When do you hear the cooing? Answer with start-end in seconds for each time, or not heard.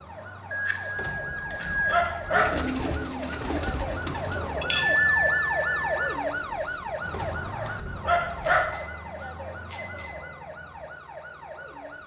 2.3-5.0.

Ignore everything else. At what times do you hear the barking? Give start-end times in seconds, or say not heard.
0.9-2.5, 7.1-8.7.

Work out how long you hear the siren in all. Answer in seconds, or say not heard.
12 s.